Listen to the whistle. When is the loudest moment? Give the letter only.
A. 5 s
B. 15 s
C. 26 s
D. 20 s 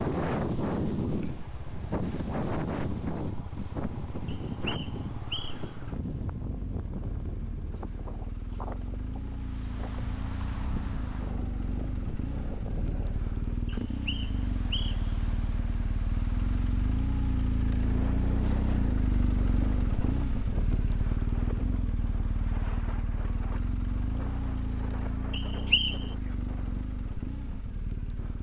C.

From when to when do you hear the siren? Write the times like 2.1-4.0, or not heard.
not heard.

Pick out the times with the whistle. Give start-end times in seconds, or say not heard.
4.2-5.7, 13.8-15.2, 25.3-26.1.